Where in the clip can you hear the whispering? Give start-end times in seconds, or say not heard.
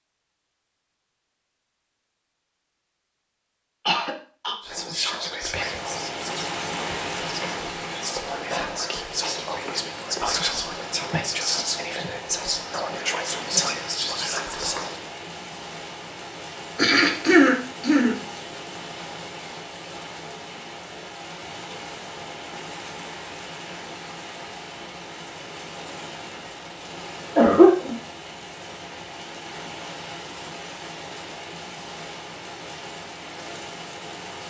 4.6-15.0.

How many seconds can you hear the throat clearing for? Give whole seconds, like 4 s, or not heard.
3 s.